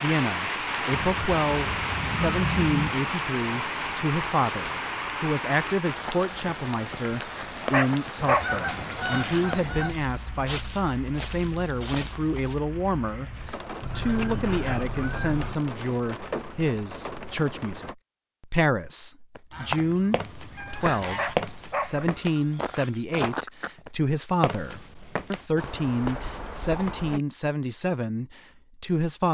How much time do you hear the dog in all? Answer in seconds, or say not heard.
5 s.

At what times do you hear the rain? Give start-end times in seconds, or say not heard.
0.0-17.9.